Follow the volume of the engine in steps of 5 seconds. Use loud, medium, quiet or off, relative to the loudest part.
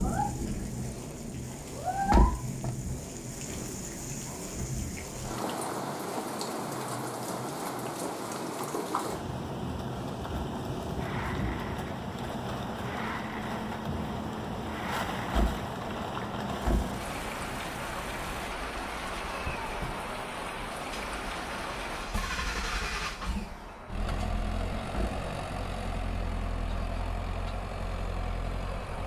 medium, medium, medium, medium, loud, loud.